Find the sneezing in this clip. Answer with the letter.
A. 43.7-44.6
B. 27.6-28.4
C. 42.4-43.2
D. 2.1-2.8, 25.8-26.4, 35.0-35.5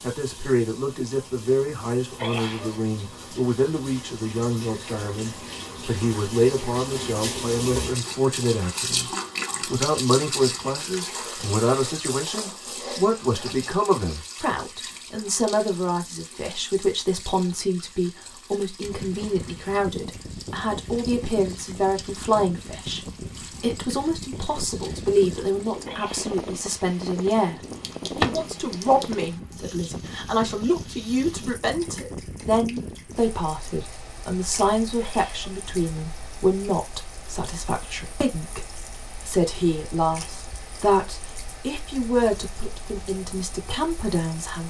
D.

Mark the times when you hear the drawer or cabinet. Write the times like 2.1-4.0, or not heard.
27.6-28.4.